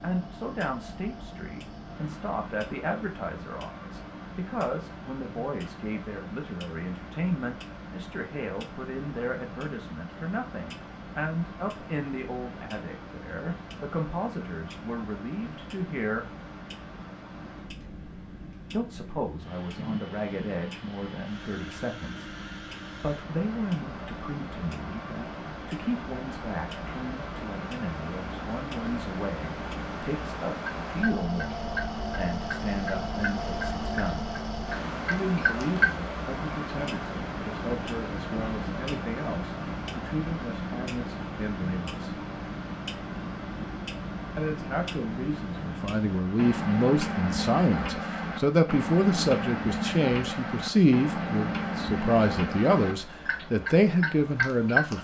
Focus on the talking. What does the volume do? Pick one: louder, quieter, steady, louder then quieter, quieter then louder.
louder.